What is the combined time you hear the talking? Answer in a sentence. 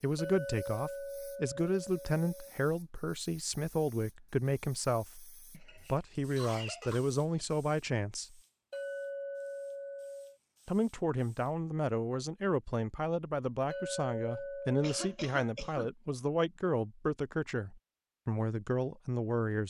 The talking can be heard for 17 seconds in total.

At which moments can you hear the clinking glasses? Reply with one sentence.
You can hear the clinking glasses from 0.1 to 2.5 s, from 8.7 to 10.3 s and from 13.7 to 15.2 s.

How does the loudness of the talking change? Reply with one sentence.
The volume of the talking stays about the same.